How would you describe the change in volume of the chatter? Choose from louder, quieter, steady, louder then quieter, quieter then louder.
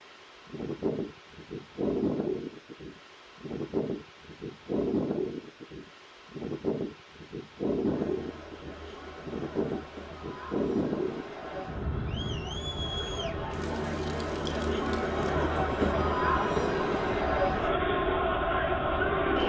louder.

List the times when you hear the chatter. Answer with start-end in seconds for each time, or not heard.
7.8-19.4.